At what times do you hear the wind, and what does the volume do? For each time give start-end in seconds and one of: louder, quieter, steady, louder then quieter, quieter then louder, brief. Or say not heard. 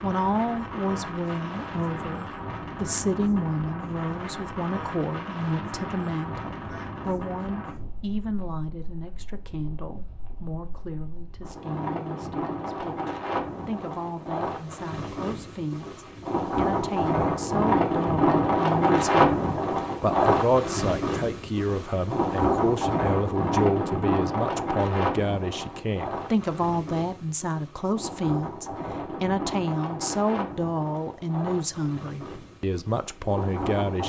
0.0-34.0 louder then quieter.